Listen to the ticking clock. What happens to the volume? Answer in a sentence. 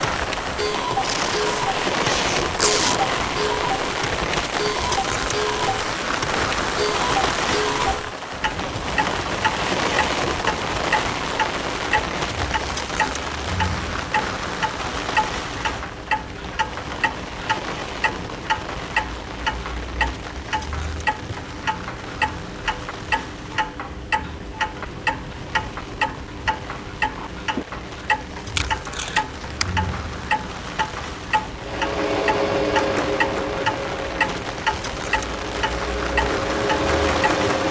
The loudness of the ticking clock stays about the same.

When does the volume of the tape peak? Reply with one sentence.
The volume of the tape peaks at 3 seconds.